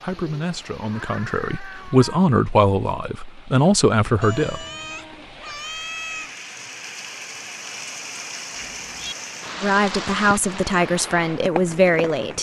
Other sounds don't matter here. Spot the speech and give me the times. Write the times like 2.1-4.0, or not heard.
0.0-4.7, 9.6-12.3.